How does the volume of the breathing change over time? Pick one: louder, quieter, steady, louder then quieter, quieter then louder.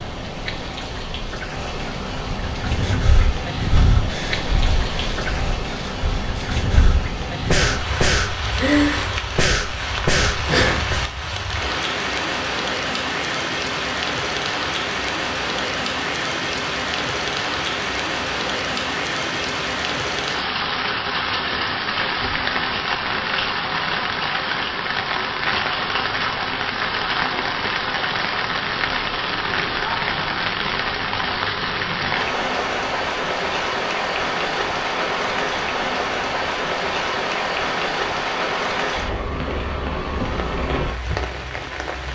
quieter then louder.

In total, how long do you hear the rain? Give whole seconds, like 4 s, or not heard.
42 s.